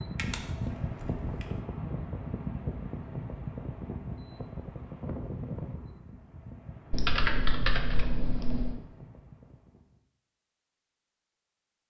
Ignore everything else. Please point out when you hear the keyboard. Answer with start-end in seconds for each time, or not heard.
0.1-1.4, 6.9-8.8.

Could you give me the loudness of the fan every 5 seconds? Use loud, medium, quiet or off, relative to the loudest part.
loud, medium, off.